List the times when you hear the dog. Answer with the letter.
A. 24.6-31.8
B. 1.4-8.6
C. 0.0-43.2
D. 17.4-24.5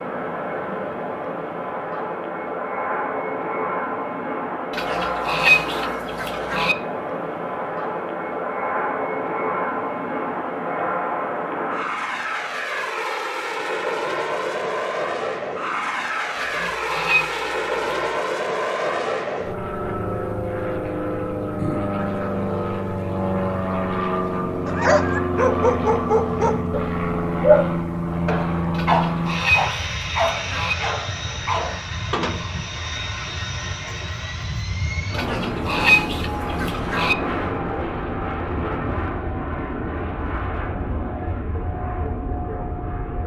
A.